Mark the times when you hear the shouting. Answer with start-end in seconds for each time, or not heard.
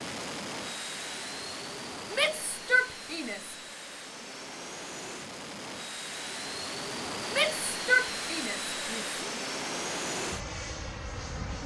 2.1-3.5, 7.3-9.1.